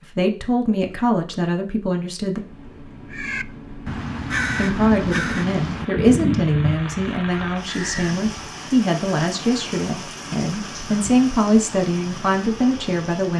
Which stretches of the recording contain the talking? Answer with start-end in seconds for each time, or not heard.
0.1-2.4, 4.5-13.3.